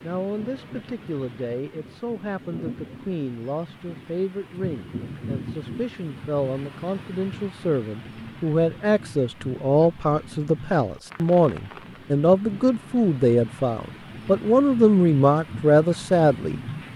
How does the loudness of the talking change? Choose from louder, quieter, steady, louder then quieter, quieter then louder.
louder.